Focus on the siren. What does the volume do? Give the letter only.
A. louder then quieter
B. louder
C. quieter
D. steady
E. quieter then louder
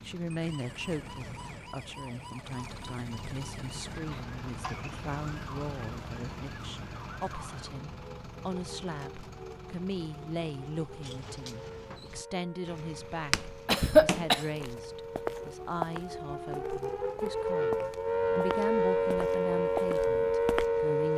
B.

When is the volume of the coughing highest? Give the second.
14 s.